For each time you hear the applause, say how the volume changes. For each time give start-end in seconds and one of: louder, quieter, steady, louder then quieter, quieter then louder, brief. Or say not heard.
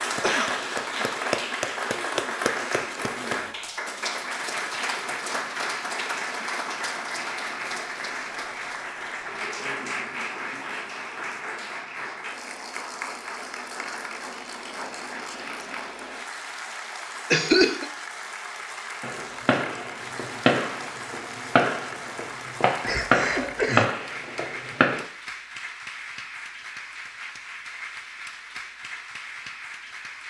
0.0-30.2 quieter.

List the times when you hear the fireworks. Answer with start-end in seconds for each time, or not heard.
19.0-25.1.